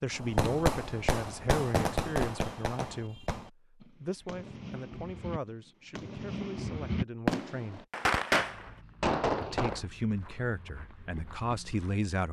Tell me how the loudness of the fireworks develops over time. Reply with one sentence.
The volume of the fireworks goes down, then up.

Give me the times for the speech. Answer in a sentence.
The speech can be heard from 0.0 to 7.8 s and from 9.4 to 12.2 s.